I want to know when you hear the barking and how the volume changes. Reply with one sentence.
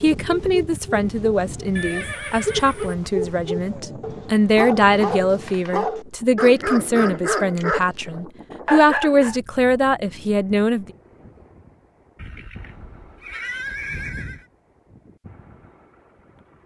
The barking can be heard from 0.1 to 7.9 s, getting louder; and briefly from 8.7 to 9.3 s.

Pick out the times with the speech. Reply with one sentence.
The speech can be heard from 0.0 to 10.8 s.